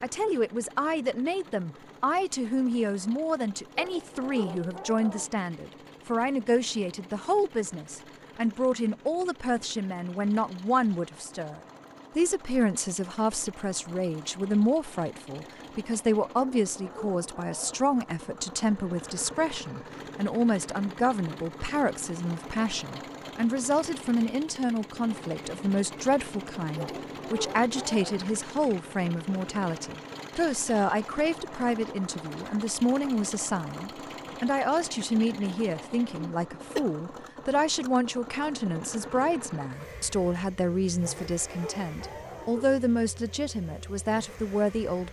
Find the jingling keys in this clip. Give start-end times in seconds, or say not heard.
not heard.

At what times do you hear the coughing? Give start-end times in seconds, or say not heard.
36.1-36.9.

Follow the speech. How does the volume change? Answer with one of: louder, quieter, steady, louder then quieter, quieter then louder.
steady.